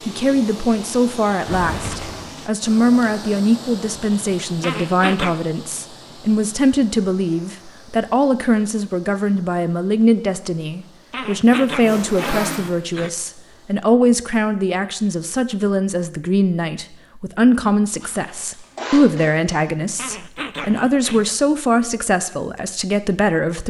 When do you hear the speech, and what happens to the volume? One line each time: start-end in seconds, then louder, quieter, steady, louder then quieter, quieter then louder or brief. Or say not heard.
0.1-23.6 steady.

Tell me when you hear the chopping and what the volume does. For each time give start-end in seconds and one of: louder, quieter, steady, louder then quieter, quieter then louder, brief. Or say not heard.
not heard.